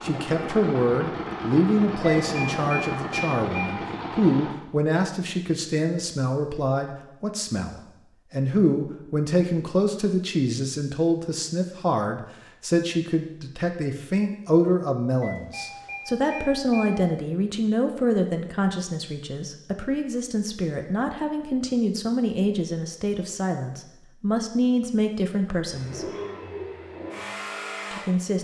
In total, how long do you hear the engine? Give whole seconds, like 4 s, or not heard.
7 s.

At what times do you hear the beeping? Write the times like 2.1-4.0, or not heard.
2.0-3.7, 15.2-16.9.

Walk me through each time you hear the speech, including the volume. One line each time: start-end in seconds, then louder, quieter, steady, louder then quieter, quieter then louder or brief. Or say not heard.
0.0-26.1 steady
27.9-28.3 brief.